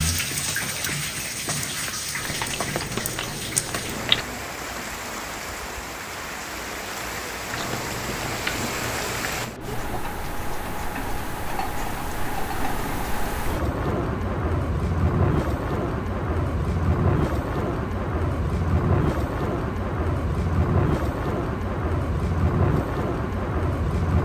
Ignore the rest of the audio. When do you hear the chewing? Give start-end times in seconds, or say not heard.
2.1-4.2, 7.5-10.0.